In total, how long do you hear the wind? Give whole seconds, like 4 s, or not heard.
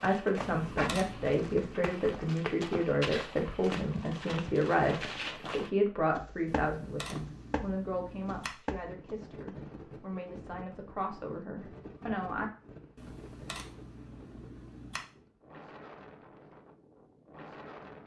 9 s.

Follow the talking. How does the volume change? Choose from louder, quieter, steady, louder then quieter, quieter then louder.
quieter.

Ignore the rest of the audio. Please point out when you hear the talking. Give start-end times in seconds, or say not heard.
0.0-12.5.